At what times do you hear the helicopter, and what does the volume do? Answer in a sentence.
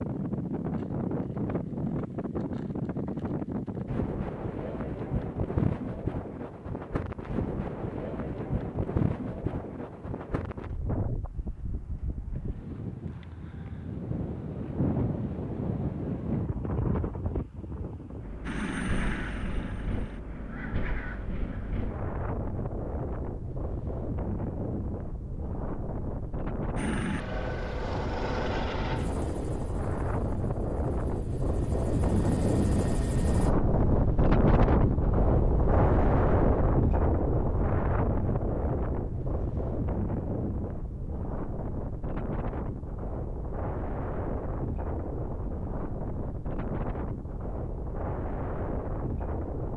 The helicopter can be heard briefly from 18.4 to 20.2 s; and from 26.8 to 33.5 s, getting quieter then louder.